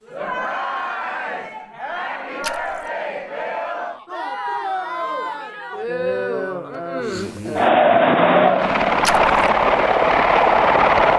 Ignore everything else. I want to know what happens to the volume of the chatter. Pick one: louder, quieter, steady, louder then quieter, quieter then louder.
louder then quieter.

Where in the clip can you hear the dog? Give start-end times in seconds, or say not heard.
not heard.